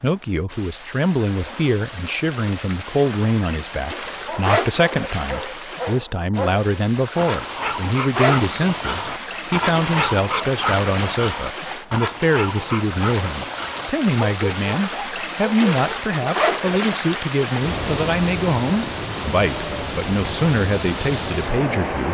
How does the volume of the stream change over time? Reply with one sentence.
The loudness of the stream goes up.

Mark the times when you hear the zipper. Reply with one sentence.
The zipper can be heard from 4.4 to 5.0 s, from 8.1 to 8.5 s and from 16.3 to 16.9 s.